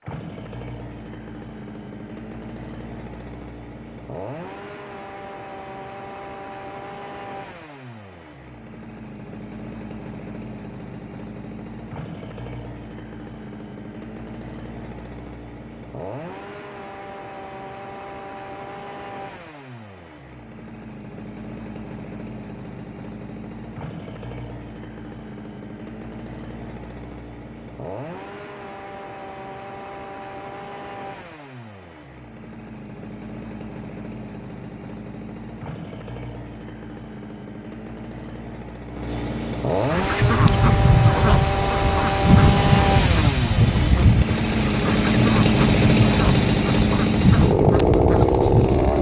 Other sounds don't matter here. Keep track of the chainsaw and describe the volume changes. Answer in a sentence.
The loudness of the chainsaw goes up.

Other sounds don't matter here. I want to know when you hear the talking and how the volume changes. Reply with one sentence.
You can't hear the talking here.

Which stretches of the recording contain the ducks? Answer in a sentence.
The ducks can be heard from 39.8 to 48.9 s.